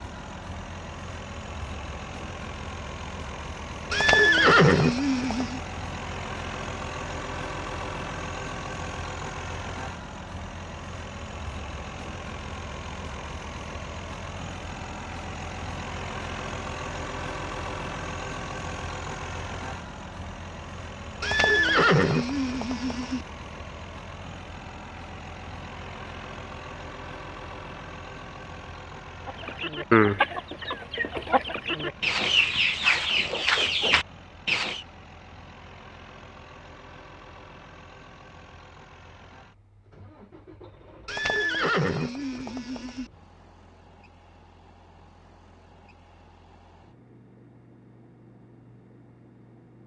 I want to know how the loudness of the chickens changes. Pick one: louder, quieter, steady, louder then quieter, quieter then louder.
quieter then louder.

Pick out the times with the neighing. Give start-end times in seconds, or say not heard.
3.9-5.6, 21.2-23.2, 41.0-43.1.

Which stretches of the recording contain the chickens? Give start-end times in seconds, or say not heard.
29.2-34.8.